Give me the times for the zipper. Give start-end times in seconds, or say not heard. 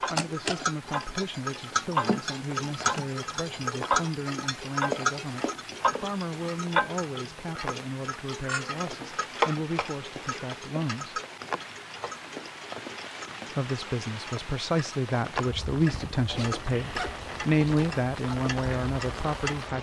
16.3-17.9.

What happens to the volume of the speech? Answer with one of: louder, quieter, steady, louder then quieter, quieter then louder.
louder.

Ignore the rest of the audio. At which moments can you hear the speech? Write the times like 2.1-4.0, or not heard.
0.0-11.2, 13.6-19.7.